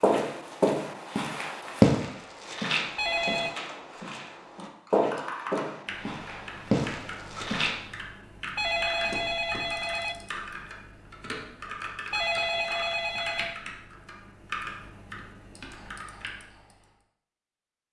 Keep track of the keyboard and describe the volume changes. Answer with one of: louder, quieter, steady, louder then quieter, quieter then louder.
steady.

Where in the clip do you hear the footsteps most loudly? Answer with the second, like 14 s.
2 s.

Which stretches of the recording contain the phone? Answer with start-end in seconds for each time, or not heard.
3.0-3.6, 8.6-10.2, 12.1-13.6.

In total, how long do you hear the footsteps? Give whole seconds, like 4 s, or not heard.
8 s.